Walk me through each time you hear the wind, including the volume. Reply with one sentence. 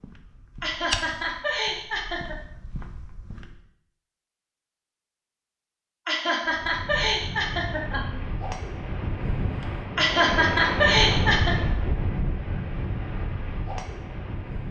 The wind can be heard from 6.5 to 14.6 s, getting louder then quieter.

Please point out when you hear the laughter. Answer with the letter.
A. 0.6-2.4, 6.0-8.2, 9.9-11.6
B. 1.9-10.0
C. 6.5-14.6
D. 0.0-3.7
A.